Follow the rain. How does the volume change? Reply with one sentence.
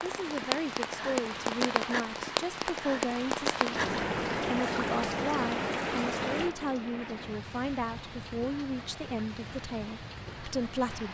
The volume of the rain goes down.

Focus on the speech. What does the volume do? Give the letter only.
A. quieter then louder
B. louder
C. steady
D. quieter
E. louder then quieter
C.